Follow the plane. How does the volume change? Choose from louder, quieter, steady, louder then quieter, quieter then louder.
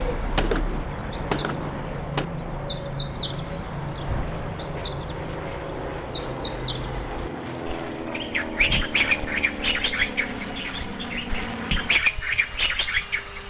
steady.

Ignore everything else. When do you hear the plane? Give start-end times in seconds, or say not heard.
0.0-13.4.